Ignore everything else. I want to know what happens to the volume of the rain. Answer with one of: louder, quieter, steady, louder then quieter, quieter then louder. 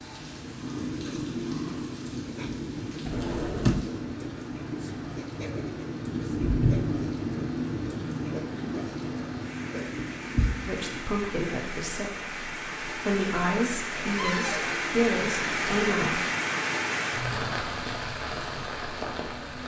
louder.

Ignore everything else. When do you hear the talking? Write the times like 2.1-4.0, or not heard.
10.7-16.2.